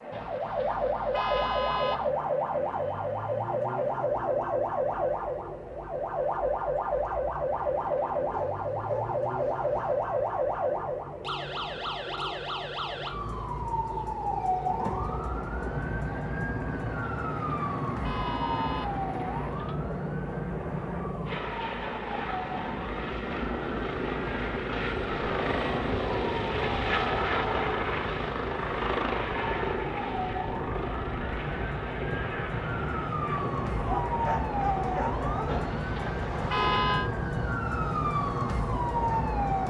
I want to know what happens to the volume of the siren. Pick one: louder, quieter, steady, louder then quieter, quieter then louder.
quieter then louder.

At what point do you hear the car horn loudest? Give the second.
37 s.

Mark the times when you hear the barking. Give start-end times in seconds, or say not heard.
8.3-9.9, 34.0-35.8.